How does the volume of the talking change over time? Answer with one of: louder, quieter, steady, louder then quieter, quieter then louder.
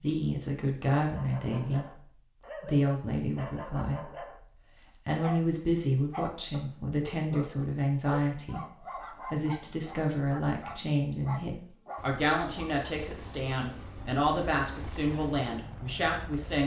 steady.